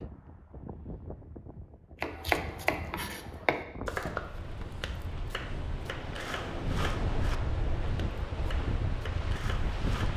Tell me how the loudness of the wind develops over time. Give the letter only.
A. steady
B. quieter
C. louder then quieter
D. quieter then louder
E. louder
E.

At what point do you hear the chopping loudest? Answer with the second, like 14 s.
2 s.